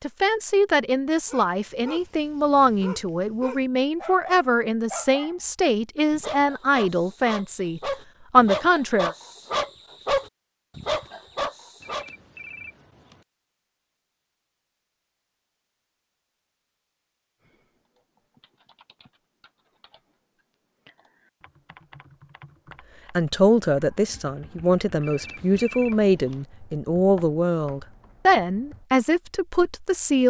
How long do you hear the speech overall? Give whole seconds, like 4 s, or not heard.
16 s.